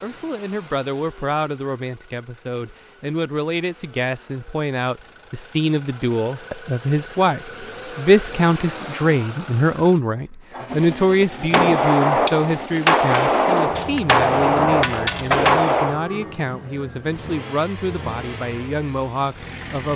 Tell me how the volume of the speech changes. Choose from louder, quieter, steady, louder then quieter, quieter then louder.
louder then quieter.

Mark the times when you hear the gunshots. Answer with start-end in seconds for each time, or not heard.
11.5-16.0.